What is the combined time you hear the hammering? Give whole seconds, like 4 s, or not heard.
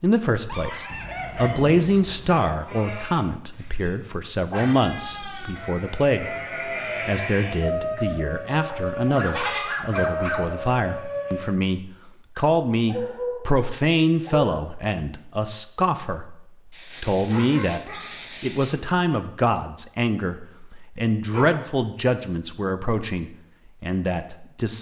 not heard.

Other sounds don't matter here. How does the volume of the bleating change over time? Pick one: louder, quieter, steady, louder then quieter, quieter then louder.
louder.